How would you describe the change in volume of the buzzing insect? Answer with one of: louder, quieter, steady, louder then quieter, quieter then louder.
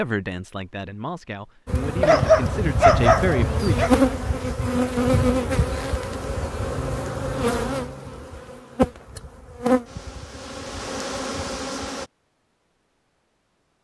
quieter.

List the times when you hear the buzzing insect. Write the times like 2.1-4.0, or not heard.
1.6-12.1.